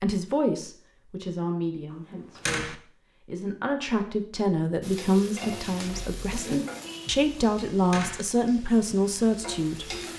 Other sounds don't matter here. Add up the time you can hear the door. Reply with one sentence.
The door can be heard for 2 seconds in total.